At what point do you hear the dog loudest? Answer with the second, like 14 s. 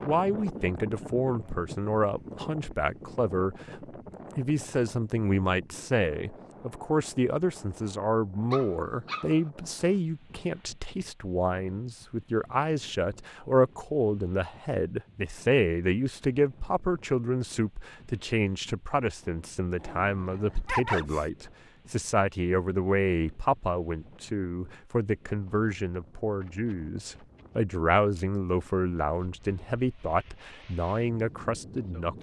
21 s.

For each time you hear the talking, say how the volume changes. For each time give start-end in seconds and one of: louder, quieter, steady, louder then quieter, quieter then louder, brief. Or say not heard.
0.1-32.1 steady.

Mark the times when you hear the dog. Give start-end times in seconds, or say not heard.
8.5-9.4, 19.8-21.2.